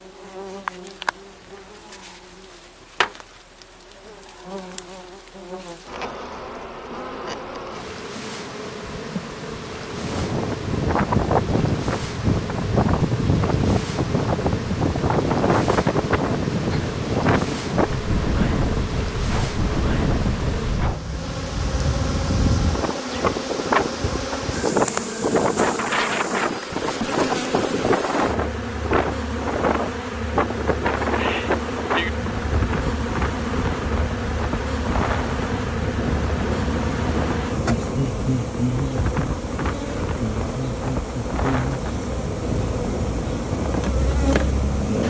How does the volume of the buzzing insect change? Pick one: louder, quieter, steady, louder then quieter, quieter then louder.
louder.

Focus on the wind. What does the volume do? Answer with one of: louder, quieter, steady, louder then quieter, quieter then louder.
quieter.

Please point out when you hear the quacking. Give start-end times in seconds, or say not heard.
not heard.